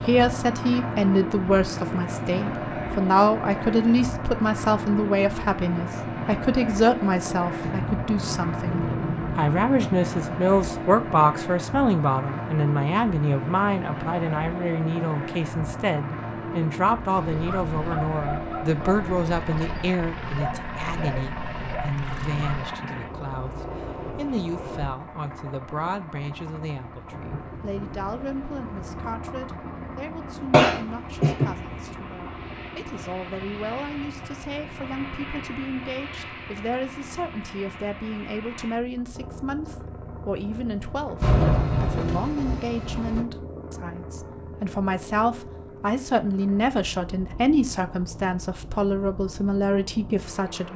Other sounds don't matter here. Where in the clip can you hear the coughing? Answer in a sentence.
You can hear the coughing from 30.5 to 31.6 s.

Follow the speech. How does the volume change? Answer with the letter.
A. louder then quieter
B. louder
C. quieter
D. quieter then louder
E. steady
D.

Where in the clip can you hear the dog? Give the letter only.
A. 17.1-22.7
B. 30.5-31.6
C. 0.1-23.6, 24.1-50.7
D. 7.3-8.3
A.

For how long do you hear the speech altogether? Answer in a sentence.
The speech can be heard for 50 seconds in total.